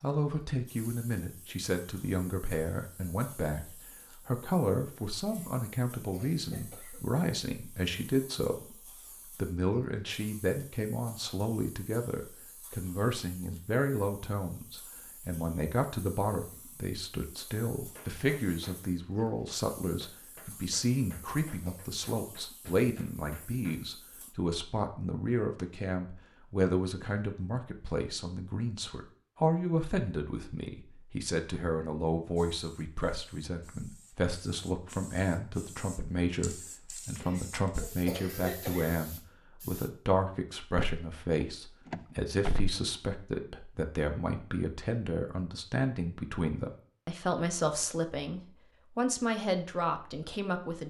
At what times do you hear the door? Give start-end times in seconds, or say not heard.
40.8-42.7.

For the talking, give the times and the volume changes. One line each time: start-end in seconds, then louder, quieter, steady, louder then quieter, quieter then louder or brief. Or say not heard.
0.0-50.8 steady.